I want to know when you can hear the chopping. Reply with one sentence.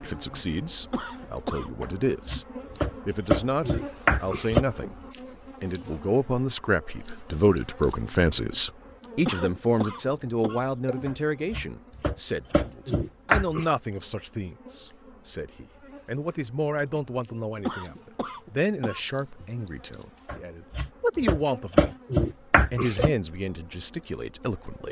You can hear the chopping from 1.8 to 4.7 s, from 11.1 to 13.7 s and from 20.2 to 23.1 s.